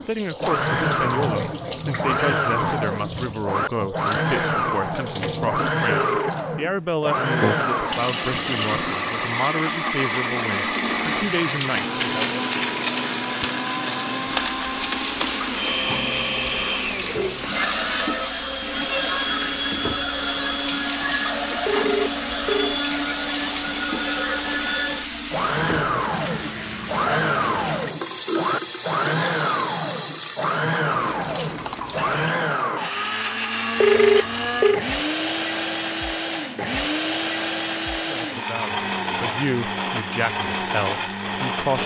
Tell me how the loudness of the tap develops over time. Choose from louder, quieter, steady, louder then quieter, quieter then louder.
steady.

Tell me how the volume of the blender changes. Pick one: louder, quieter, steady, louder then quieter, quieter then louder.
steady.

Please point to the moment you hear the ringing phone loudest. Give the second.
34 s.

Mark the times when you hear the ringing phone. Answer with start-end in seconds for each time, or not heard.
5.8-6.3, 21.6-22.8, 33.8-34.9.